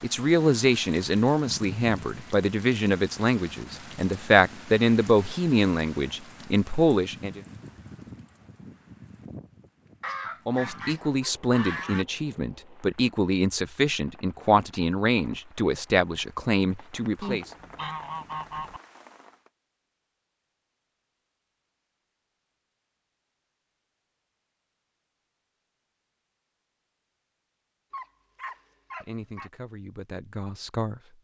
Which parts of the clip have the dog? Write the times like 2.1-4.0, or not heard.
27.9-29.5.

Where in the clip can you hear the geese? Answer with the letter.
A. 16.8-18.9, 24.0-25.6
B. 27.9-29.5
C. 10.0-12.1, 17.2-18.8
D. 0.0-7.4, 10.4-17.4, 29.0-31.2
C.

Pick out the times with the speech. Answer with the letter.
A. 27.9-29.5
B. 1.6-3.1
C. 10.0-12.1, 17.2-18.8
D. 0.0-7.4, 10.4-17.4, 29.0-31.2
D.